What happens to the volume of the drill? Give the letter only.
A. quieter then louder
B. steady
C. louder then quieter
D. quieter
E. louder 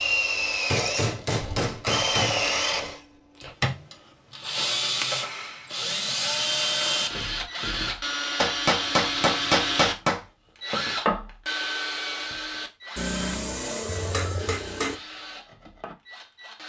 D.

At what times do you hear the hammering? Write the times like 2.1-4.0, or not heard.
0.7-2.5, 5.0-5.7, 8.3-10.2, 12.9-14.9.